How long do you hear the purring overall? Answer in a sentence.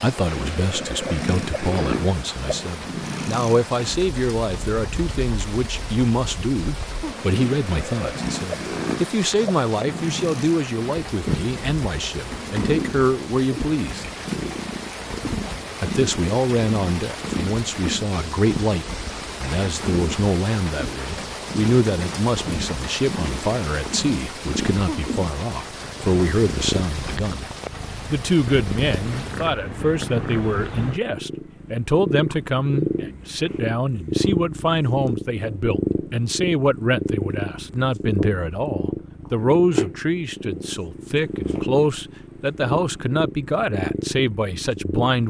You can hear the purring for 45 seconds altogether.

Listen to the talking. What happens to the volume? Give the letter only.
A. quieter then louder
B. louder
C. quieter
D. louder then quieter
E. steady
E.